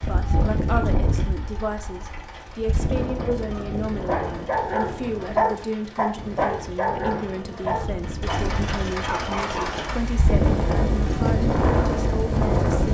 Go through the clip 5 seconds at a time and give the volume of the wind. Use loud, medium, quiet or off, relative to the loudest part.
medium, quiet, loud.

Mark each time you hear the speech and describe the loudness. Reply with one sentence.
You can hear the speech from 0.0 to 12.9 s, at a steady volume.